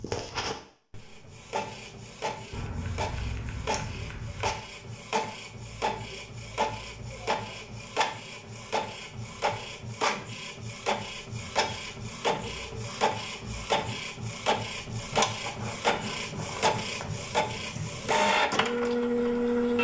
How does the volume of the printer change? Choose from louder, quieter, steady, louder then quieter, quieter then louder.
louder.